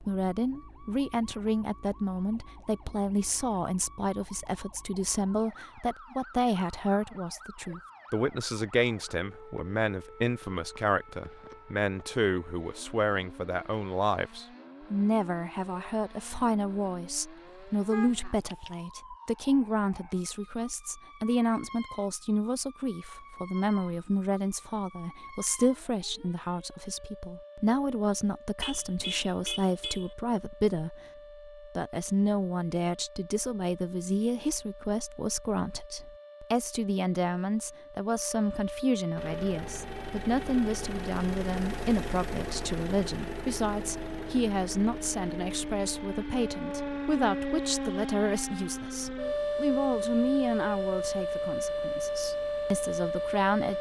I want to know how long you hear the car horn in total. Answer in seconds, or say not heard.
3 s.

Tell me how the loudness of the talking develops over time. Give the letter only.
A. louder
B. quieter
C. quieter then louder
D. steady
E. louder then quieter
D.